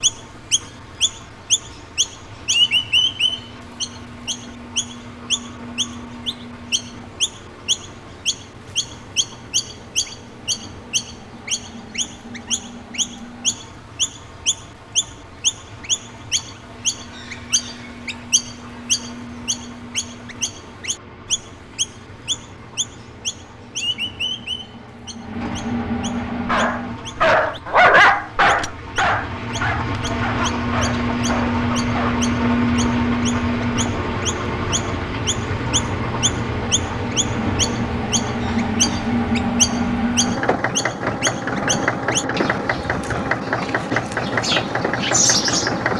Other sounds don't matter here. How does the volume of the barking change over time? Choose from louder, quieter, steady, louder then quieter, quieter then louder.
quieter.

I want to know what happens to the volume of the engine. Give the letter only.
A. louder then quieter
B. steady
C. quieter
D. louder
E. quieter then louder
D.